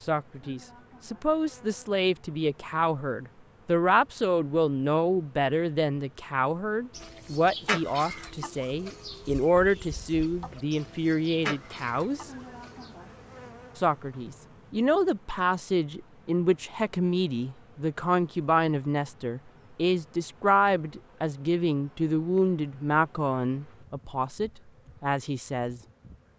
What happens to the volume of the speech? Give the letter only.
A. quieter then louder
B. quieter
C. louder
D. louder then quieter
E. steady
E.